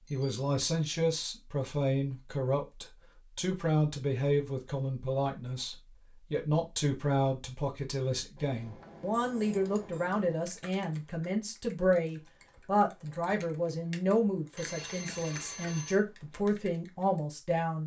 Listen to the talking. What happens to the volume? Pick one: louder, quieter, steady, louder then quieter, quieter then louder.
steady.